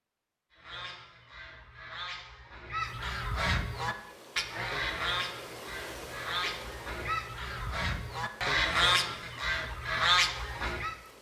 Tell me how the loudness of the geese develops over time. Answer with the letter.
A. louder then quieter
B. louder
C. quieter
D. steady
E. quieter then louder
B.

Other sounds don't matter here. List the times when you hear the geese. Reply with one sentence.
You can hear the geese from 0.5 to 10.9 s.